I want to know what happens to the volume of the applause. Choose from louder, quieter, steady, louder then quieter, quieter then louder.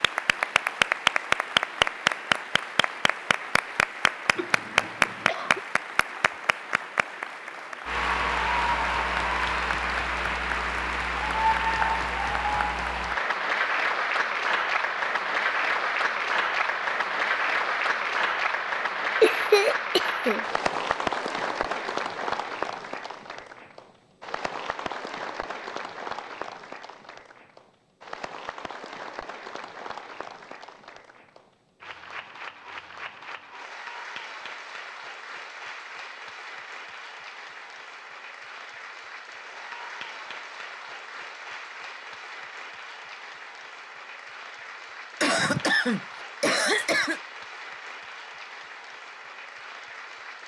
quieter.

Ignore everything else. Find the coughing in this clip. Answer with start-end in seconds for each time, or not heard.
4.3-5.6, 19.2-20.4, 45.2-47.2.